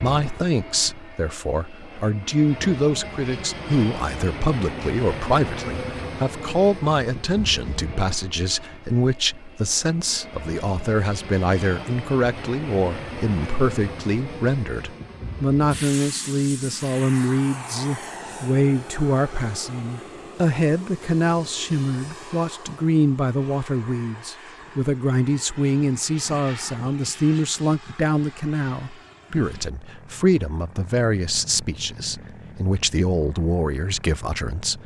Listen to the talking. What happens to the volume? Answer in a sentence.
The volume of the talking stays about the same.